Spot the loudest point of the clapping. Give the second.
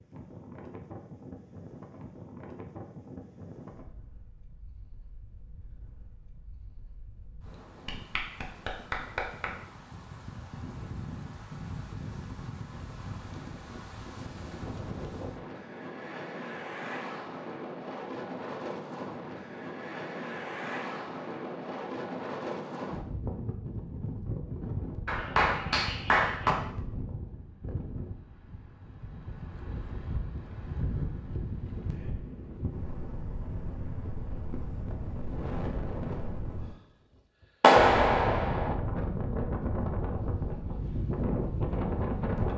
38 s.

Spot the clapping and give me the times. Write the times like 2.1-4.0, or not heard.
7.8-9.4, 25.1-26.6, 37.6-38.8.